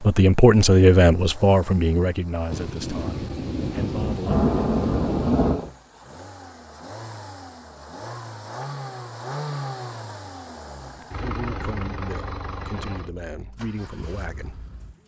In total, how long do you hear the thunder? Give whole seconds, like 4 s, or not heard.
3 s.